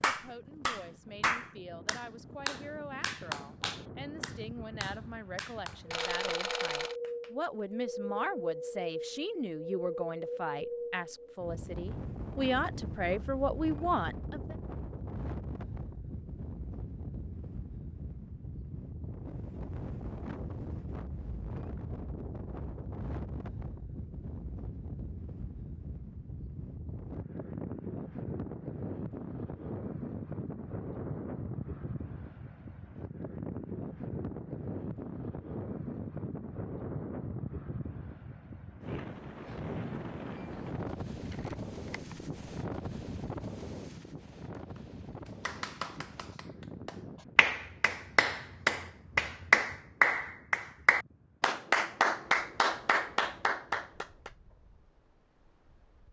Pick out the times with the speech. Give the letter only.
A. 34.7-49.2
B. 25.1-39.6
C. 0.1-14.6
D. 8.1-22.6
C.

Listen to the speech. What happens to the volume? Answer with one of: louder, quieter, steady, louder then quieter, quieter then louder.
louder.